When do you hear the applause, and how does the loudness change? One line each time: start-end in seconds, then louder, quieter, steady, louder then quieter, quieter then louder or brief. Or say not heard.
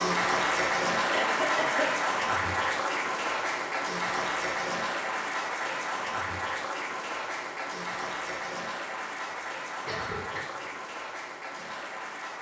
0.0-12.3 quieter.